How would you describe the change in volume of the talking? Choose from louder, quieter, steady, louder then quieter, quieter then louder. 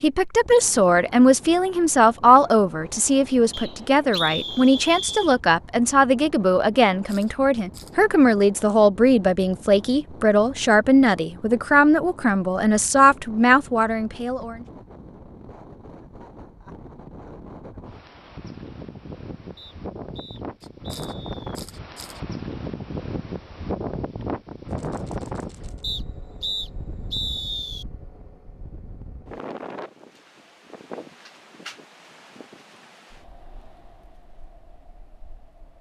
steady.